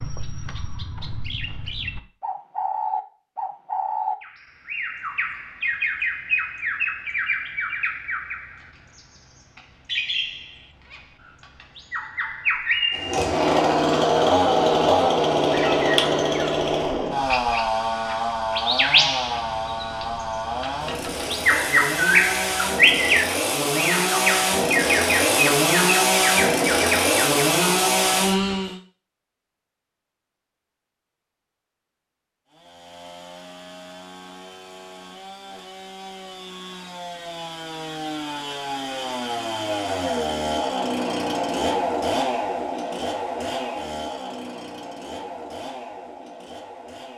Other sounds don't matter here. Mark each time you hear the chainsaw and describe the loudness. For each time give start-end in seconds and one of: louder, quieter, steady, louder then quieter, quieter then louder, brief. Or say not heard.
12.9-28.8 quieter then louder
32.5-47.1 louder then quieter.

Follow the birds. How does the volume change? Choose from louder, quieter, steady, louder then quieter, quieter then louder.
louder.